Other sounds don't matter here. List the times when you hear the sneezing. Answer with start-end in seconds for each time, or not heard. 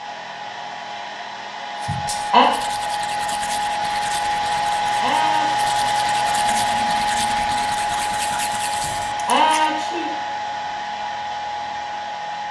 1.9-2.5, 4.5-5.5, 8.8-10.1.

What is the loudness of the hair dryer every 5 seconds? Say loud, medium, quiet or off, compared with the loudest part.
loud, loud, medium.